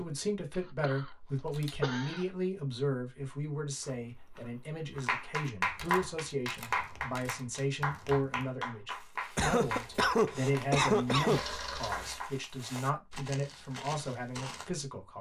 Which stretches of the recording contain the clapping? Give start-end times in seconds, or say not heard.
5.0-12.3.